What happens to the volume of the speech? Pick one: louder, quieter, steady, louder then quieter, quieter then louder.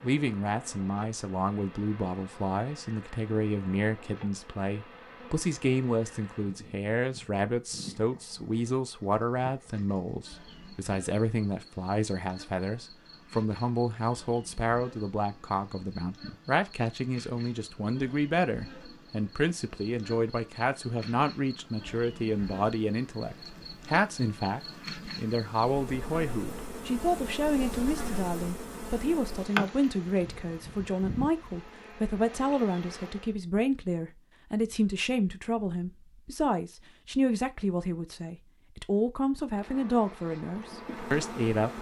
steady.